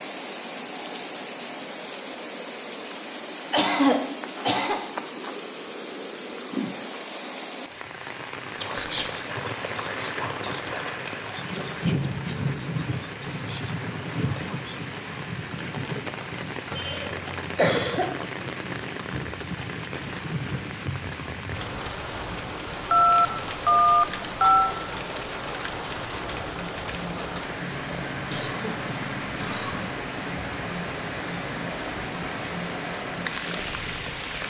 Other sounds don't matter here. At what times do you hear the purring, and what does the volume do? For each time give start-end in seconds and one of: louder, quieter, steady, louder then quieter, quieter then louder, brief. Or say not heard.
26.2-34.1 steady.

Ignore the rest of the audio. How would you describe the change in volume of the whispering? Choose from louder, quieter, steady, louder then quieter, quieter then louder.
quieter.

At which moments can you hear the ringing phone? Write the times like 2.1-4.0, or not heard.
22.9-24.8.